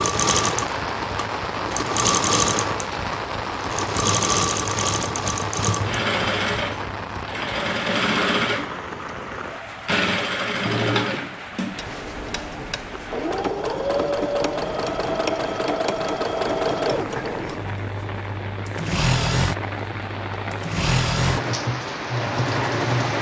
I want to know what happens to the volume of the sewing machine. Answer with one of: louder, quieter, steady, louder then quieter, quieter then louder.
steady.